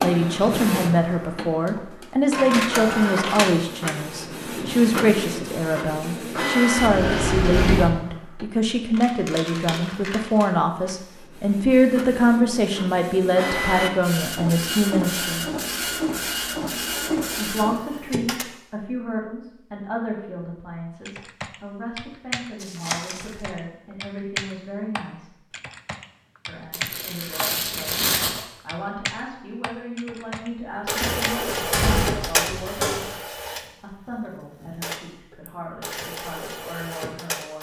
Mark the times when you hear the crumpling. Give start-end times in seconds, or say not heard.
8.9-10.2, 22.6-23.2, 26.7-28.4.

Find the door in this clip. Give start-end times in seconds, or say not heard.
6.8-7.9, 31.0-33.1.